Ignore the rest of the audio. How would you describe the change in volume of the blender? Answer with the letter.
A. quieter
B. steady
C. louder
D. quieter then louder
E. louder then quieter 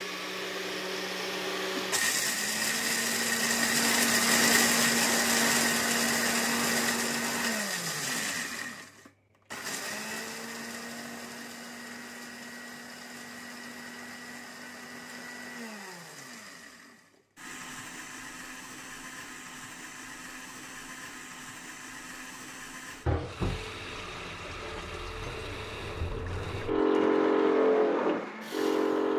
A.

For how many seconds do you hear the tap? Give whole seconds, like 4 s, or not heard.
6 s.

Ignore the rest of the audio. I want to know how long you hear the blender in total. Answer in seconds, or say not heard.
29 s.